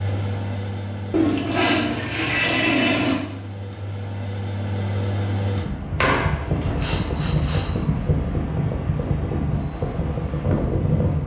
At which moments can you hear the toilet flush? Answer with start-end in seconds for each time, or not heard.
1.1-3.1, 5.8-7.0.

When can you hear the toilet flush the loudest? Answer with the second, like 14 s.
3 s.